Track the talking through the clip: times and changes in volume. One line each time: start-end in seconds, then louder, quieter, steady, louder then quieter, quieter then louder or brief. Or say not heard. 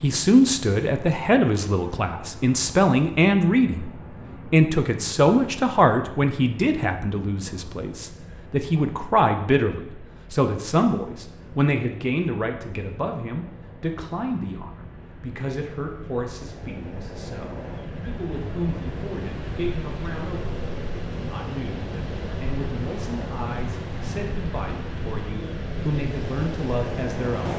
0.0-27.5 quieter.